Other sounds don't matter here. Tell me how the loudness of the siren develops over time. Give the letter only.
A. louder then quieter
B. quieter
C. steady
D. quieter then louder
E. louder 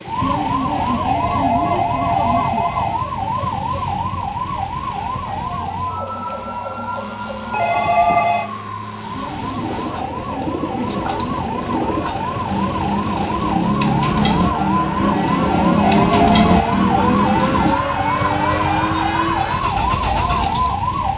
D.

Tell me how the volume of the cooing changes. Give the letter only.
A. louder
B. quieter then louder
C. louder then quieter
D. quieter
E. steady
A.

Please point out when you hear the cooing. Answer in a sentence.
The cooing can be heard from 9.2 to 17.8 s.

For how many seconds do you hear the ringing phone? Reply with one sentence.
You can hear the ringing phone for 4 seconds altogether.